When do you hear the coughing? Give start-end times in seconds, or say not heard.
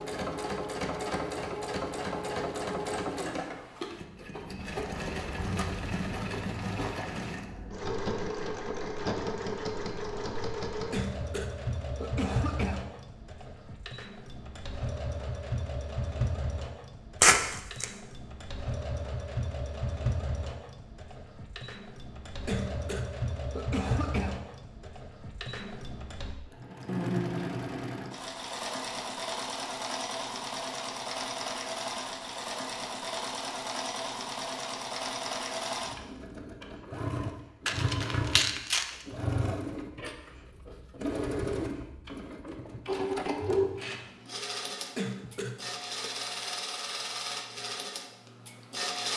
10.9-12.8, 22.4-24.4, 45.0-46.1.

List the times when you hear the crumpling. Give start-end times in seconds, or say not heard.
17.2-17.9, 37.6-38.9.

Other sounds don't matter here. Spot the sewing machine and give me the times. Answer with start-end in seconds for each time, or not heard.
0.0-49.1.